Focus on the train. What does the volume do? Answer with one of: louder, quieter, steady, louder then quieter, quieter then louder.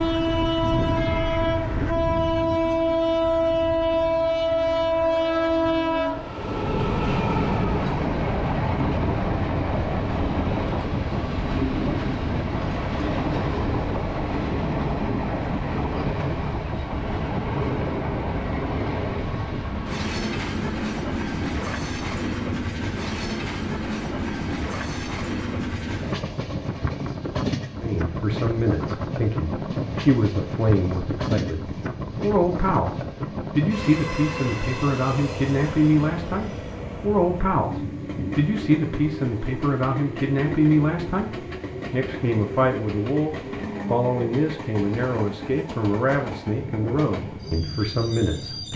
quieter.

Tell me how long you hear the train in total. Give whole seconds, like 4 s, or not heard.
49 s.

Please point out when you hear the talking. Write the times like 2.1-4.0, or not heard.
27.8-48.7.